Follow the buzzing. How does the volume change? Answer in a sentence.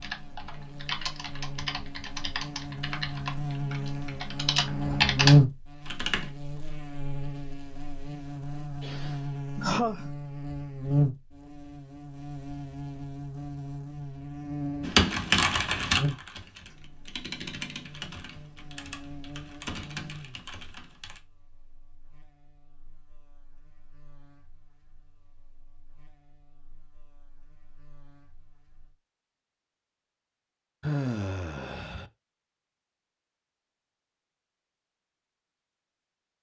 The loudness of the buzzing goes down.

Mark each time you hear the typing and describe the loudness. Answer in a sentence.
The typing can be heard from 0.0 to 6.3 s, getting louder; and from 14.8 to 21.2 s, getting quieter.